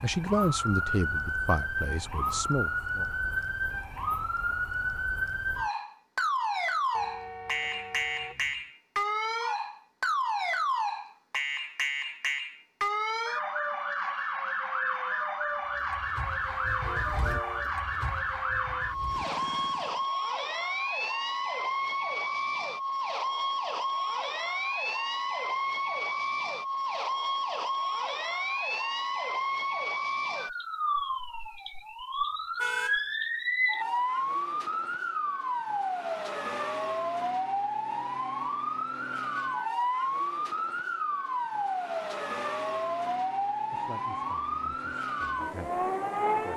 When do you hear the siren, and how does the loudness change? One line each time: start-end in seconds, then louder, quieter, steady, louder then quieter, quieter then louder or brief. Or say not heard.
0.0-46.5 steady.